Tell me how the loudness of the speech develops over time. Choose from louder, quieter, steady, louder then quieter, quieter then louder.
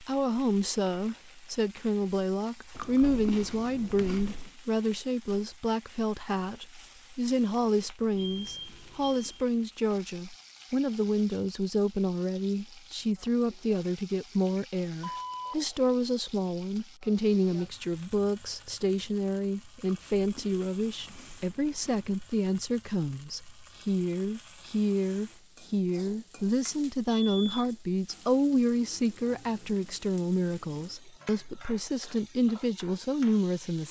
steady.